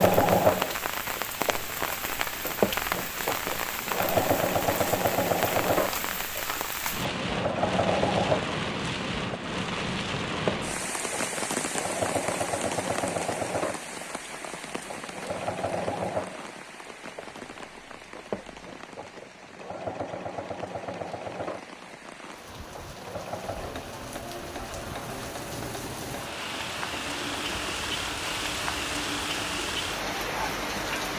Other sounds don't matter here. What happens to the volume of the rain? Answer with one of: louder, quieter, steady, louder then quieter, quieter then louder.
quieter then louder.